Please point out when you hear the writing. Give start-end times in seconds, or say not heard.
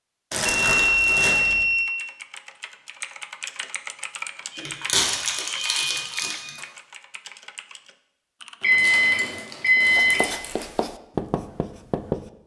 9.8-12.3.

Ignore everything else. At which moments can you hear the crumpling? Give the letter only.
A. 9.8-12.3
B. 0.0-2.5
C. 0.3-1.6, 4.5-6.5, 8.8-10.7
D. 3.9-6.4
C.